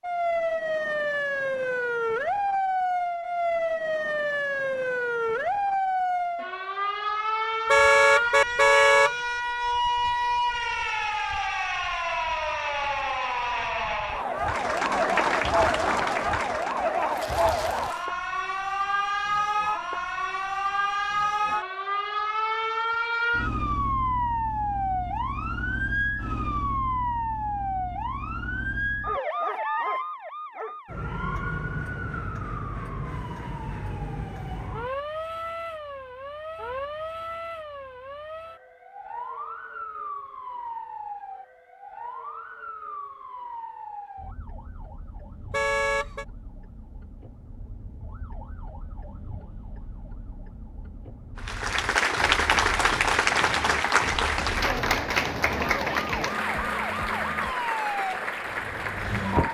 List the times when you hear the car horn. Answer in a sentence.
The car horn can be heard from 7.7 to 9.2 s and from 45.5 to 46.2 s.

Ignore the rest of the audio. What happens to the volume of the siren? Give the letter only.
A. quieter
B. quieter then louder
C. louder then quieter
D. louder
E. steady
A.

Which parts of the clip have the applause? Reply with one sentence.
You can hear the applause from 14.3 to 18.1 s and from 51.4 to 59.4 s.